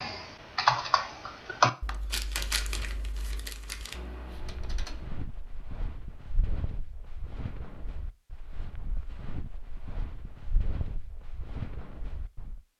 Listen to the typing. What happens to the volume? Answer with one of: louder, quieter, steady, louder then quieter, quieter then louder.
quieter then louder.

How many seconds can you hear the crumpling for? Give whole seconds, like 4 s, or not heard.
2 s.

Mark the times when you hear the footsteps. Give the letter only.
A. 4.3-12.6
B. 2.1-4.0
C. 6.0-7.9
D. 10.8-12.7
A.